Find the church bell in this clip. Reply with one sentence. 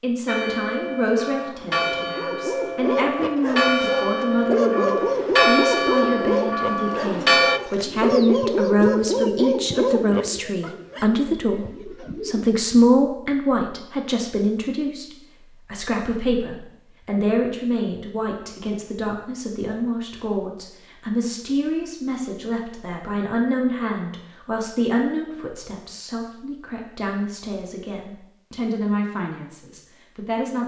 The church bell can be heard from 0.2 to 7.6 s.